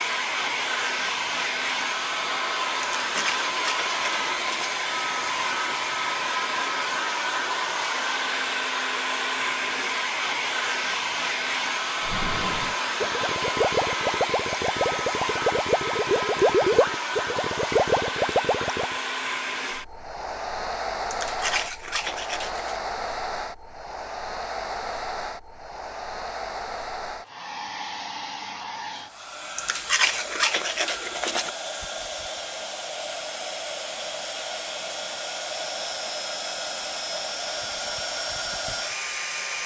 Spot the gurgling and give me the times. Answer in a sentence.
You can hear the gurgling from 12.1 to 19.0 s.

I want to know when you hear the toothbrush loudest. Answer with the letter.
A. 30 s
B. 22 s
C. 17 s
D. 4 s
A.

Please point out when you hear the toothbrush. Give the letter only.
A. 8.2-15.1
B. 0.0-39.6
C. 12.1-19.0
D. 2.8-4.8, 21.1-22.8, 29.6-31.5
D.